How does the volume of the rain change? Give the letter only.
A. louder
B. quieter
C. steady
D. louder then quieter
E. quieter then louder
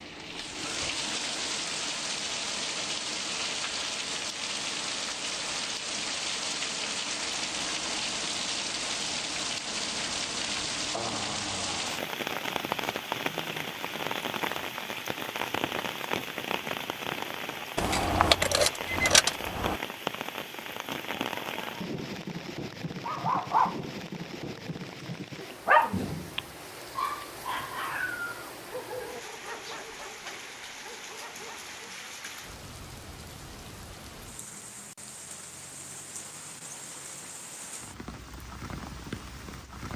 B.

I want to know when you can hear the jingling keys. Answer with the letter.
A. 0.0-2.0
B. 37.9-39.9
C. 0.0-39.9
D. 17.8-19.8
D.